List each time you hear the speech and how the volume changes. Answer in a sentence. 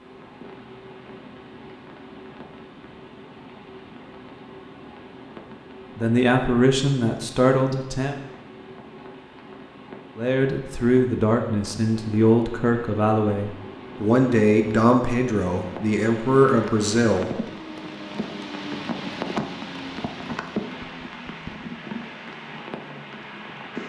The speech can be heard briefly from 6.0 to 8.2 s; and from 10.2 to 17.3 s, at a steady volume.